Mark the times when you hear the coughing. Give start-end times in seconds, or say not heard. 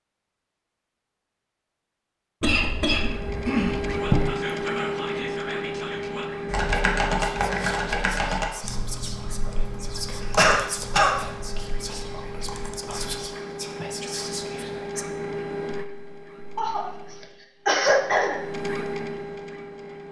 2.4-4.2, 10.3-11.2, 16.6-18.4.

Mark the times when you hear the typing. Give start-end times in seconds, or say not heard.
6.5-13.2.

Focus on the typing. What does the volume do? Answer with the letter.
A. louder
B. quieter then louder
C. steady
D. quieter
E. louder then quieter
D.